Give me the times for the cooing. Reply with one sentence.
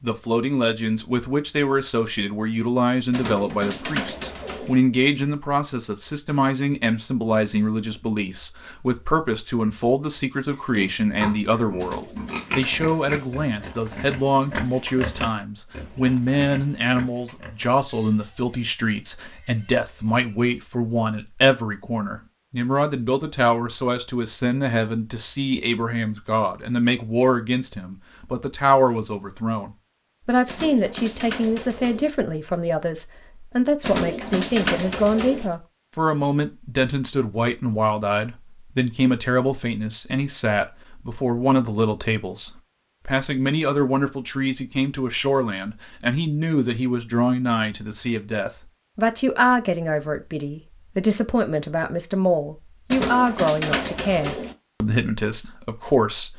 You can hear the cooing from 3.1 to 4.8 s, from 11.8 to 13.4 s, from 30.4 to 32.1 s, from 33.8 to 35.5 s and from 52.9 to 54.5 s.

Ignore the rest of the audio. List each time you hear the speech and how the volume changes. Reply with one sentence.
You can hear the speech from 0.0 to 56.3 s, at a steady volume.